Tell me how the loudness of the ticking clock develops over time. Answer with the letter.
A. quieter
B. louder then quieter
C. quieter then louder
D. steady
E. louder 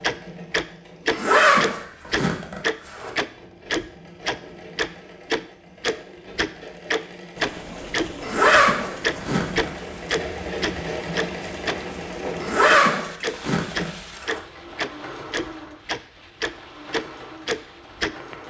D.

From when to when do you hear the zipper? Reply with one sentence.
The zipper can be heard from 1.1 to 3.1 s, from 8.2 to 9.7 s and from 12.4 to 14.4 s.